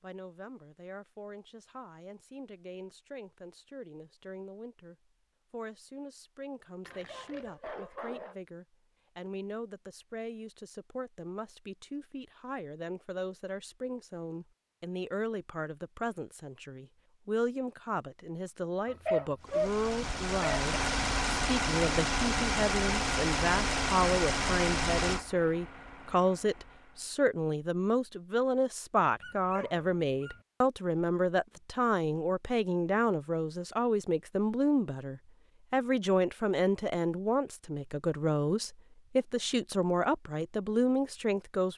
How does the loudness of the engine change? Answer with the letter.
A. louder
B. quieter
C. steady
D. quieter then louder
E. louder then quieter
B.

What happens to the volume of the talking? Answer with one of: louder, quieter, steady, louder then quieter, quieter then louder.
louder.